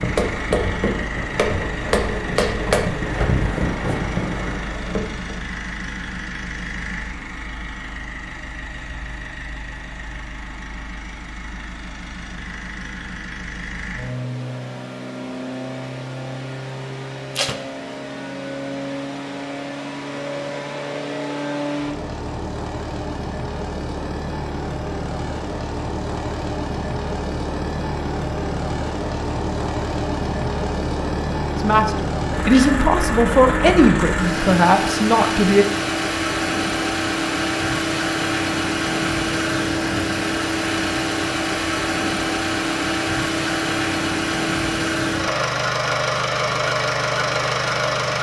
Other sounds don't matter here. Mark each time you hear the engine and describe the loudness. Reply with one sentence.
You can hear the engine from 0.0 to 48.1 s, getting louder.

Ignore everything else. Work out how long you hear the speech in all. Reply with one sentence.
You can hear the speech for 4 seconds altogether.